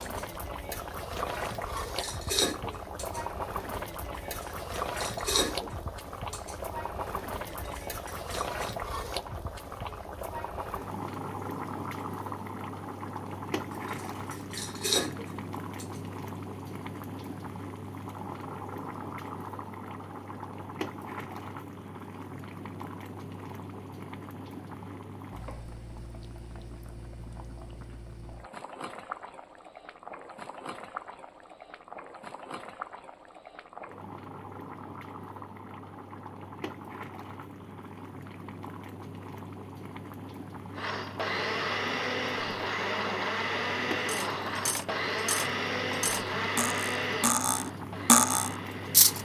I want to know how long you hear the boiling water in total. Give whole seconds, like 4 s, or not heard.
49 s.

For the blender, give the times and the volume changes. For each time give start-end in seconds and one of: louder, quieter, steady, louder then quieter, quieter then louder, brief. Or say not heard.
40.8-49.2 quieter.